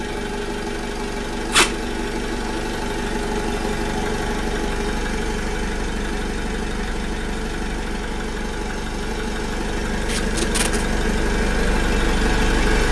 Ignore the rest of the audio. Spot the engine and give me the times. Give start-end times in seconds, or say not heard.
0.0-12.8.